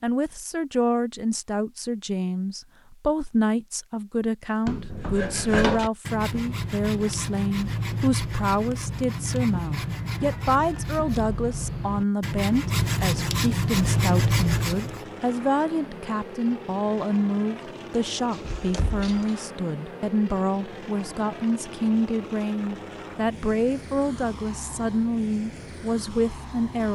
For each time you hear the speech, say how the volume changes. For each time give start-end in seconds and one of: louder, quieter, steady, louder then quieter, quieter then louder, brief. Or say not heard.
0.0-26.9 steady.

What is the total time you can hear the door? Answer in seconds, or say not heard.
2 s.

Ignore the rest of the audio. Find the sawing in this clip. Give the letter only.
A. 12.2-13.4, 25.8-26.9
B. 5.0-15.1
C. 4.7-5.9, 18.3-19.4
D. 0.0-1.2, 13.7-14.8
B.